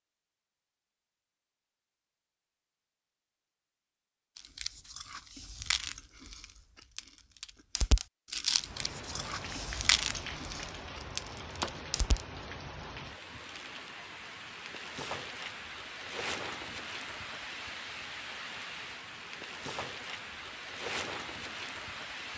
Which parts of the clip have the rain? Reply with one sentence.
You can hear the rain from 8.6 to 22.3 s.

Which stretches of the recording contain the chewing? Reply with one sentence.
You can hear the chewing from 4.3 to 12.2 s.